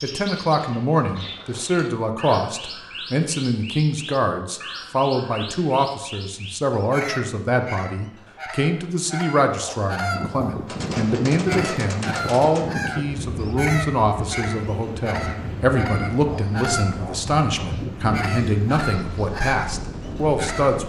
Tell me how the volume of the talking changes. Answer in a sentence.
The volume of the talking stays about the same.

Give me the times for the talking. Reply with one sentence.
You can hear the talking from 0.0 to 20.8 s.